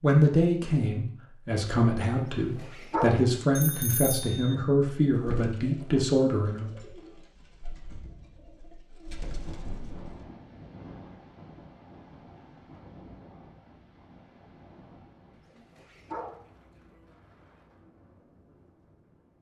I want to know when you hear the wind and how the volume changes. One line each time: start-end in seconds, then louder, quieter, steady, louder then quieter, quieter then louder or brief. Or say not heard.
9.2-19.3 quieter.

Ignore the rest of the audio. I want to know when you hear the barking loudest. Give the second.
3 s.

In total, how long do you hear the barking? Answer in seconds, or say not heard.
2 s.